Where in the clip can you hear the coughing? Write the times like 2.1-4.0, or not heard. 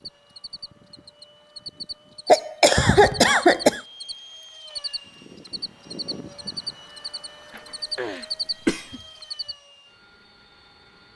2.2-3.8, 7.5-9.0.